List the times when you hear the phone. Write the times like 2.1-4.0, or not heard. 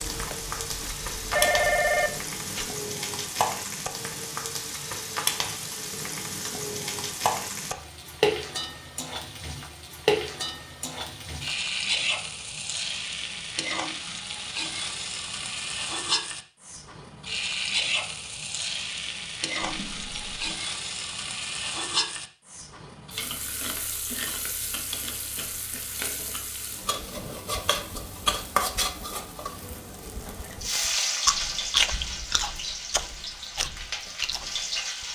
1.3-2.7, 19.6-20.6.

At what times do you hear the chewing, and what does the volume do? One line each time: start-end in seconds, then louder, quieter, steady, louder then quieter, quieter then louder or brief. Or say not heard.
0.0-1.7 brief
30.8-35.1 quieter.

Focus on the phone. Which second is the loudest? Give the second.
2 s.